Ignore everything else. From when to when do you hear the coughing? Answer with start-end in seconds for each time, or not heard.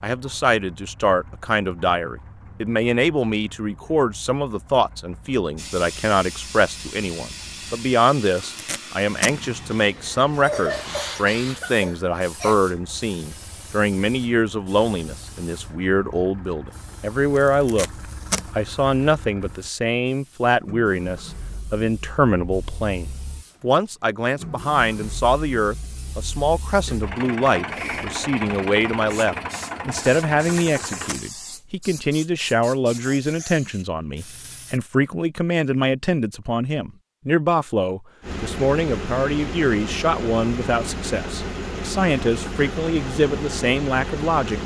10.4-12.6.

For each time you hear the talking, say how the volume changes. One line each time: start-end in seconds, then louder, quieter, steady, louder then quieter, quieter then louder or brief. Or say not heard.
0.0-17.9 steady
18.6-44.6 steady.